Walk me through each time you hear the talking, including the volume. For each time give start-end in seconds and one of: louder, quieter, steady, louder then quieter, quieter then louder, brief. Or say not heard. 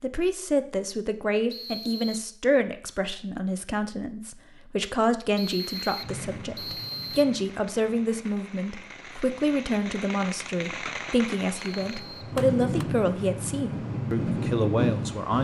0.0-15.4 steady.